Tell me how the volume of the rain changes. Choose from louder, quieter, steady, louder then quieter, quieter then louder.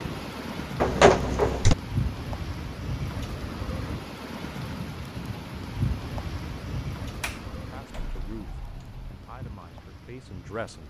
quieter.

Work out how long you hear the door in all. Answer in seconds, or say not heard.
3 s.